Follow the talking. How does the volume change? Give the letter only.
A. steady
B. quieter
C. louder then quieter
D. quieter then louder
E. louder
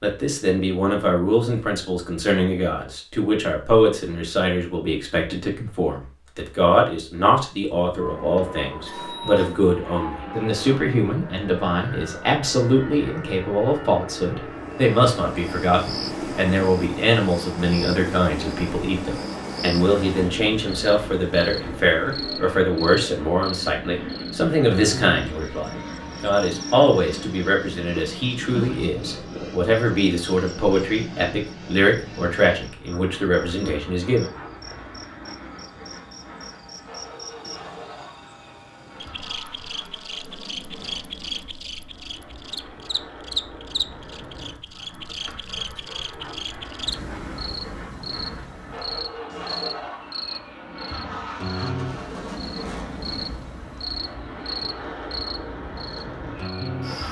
A.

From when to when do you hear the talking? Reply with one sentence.
The talking can be heard from 0.0 to 34.2 s.